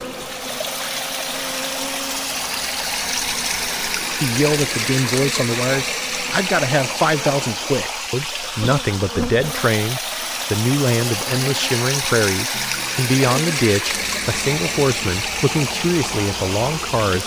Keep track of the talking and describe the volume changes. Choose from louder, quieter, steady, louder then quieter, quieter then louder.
steady.